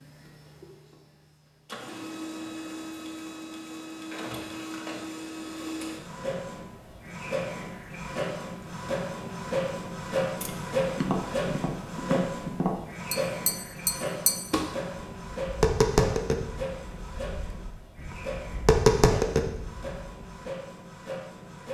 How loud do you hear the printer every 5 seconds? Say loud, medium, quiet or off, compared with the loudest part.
medium, loud, loud, medium, medium.